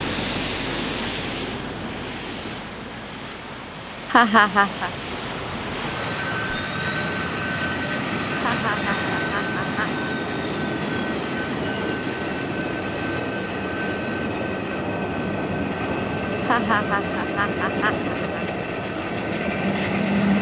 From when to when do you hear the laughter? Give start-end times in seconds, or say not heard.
4.1-4.9, 8.4-10.1, 16.4-18.4.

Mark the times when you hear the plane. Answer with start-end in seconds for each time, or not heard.
0.0-20.3.